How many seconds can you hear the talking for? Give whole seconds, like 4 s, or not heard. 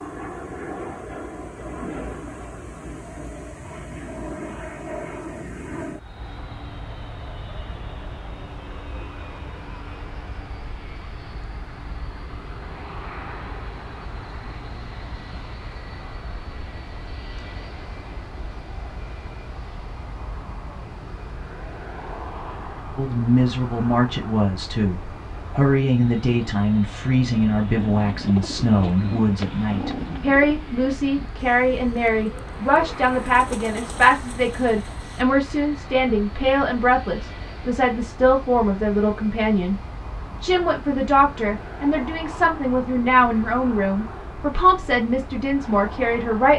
23 s.